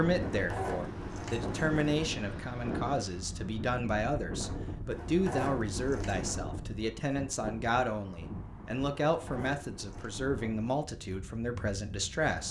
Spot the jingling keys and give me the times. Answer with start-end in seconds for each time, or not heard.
0.3-2.0, 4.9-6.3, 9.1-10.2.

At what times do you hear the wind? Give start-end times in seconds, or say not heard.
0.0-12.4.